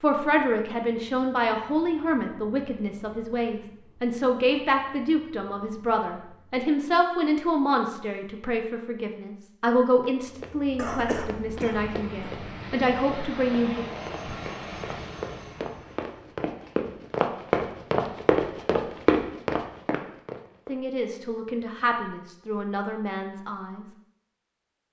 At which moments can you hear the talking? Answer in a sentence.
The talking can be heard from 0.0 to 13.8 s and from 20.6 to 23.9 s.